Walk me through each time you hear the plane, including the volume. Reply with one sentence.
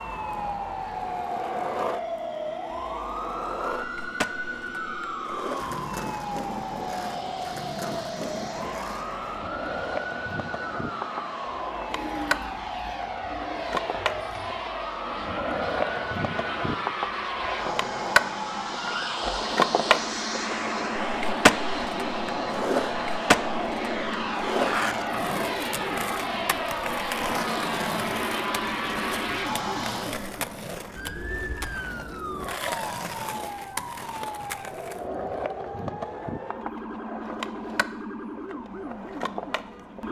You can hear the plane from 0.0 to 30.2 s, getting louder.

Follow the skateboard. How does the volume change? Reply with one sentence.
The loudness of the skateboard goes up, then down.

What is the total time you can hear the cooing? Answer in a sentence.
The cooing can be heard for 4 seconds in total.